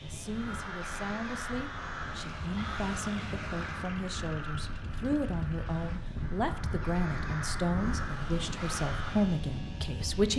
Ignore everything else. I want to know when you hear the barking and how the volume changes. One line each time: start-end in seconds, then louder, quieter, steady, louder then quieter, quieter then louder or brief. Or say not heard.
not heard.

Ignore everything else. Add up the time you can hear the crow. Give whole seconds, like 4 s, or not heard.
9 s.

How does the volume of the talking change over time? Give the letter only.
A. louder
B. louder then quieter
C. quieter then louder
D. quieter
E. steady
A.